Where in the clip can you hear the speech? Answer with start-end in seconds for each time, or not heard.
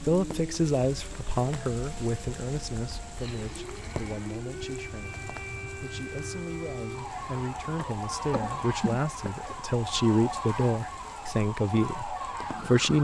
0.0-12.9.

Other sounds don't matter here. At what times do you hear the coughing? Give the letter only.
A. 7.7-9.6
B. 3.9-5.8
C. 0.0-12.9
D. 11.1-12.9
A.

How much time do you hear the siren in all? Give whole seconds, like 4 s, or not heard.
13 s.